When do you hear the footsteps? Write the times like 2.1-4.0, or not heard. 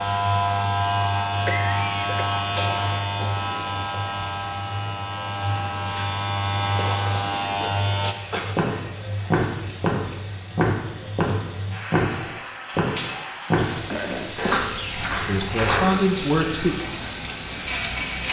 8.6-16.0.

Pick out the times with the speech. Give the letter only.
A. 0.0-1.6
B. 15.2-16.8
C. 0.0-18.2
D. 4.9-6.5
B.